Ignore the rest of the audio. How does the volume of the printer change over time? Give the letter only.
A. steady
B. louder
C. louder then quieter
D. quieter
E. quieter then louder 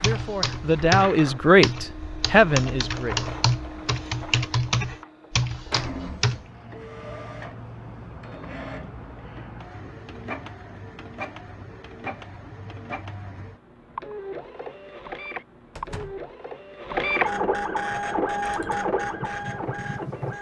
B.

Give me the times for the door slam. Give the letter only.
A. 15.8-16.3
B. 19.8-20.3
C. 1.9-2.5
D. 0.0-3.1
A.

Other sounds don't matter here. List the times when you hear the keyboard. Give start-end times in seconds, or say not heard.
0.0-6.5, 17.8-20.3.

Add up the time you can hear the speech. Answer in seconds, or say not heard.
3 s.